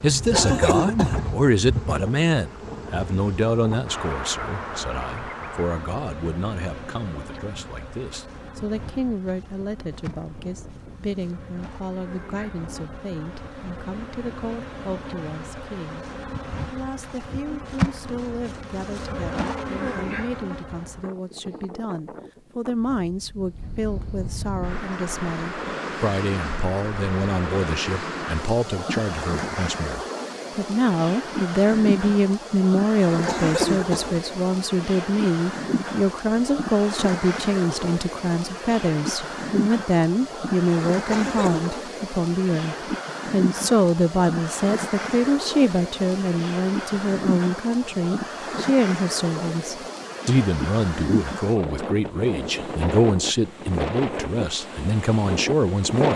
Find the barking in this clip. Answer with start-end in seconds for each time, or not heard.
not heard.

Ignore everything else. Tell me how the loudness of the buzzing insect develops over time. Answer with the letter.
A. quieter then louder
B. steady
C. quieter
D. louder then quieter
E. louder
A.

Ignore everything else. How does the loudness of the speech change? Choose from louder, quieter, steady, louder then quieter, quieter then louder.
quieter then louder.